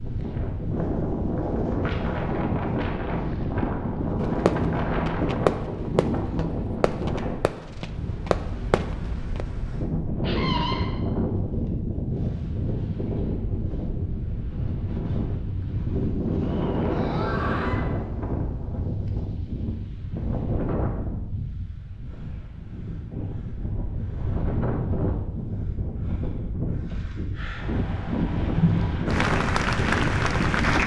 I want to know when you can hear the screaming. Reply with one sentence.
You can hear the screaming from 10.2 to 10.9 s and from 16.8 to 17.9 s.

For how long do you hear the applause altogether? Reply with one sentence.
The applause can be heard for 2 seconds in total.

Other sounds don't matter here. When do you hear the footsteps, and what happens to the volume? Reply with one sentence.
You can't hear the footsteps here.